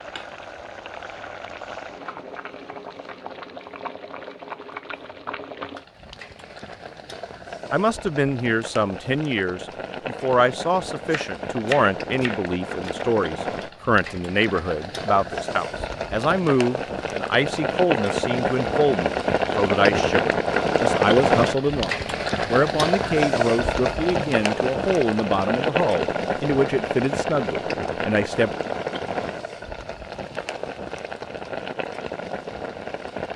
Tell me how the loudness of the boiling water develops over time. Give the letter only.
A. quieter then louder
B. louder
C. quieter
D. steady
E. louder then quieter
E.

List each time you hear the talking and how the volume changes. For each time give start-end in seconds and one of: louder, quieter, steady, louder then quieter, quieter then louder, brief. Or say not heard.
7.7-28.6 steady.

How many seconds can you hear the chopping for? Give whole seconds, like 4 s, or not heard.
2 s.